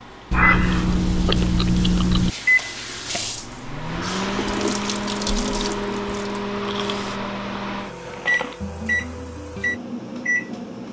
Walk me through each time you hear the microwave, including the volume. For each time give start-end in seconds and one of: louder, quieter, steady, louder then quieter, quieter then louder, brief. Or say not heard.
0.0-10.8 steady.